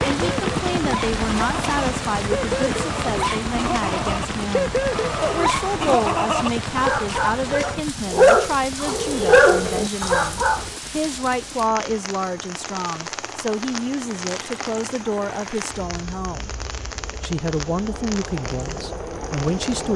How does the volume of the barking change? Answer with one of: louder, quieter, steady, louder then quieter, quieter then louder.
louder.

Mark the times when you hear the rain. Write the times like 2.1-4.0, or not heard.
0.0-19.9.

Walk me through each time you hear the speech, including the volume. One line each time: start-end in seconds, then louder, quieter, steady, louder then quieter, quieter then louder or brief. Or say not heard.
0.1-16.5 steady
17.2-19.9 brief.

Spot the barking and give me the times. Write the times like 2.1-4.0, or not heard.
0.0-10.7.